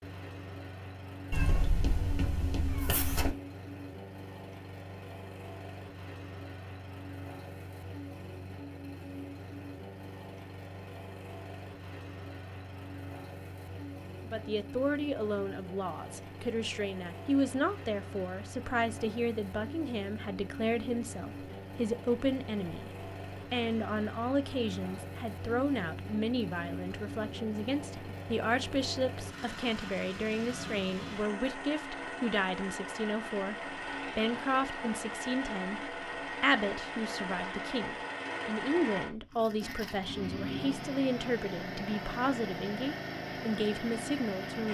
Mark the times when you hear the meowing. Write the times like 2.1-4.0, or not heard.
1.3-3.4.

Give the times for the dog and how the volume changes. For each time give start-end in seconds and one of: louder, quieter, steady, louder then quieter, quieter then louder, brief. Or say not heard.
not heard.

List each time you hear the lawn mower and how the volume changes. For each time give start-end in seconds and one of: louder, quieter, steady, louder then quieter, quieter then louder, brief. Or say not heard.
0.0-44.7 louder.